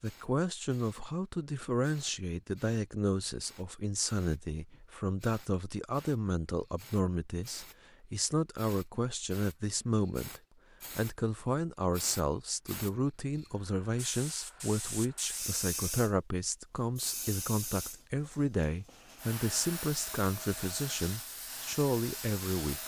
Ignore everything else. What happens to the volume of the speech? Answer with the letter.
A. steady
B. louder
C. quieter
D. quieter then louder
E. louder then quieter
A.